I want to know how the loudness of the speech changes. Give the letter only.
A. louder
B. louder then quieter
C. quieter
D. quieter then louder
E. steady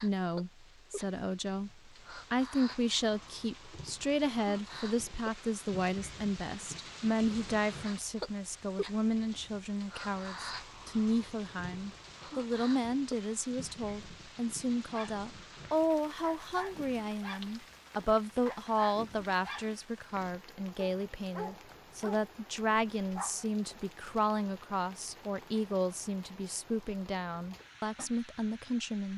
E.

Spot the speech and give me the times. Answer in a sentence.
You can hear the speech from 0.0 to 29.1 s.